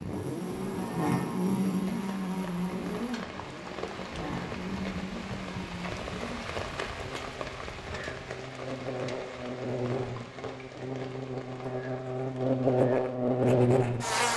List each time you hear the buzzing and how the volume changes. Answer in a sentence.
The buzzing can be heard from 0.0 to 14.3 s, getting quieter then louder.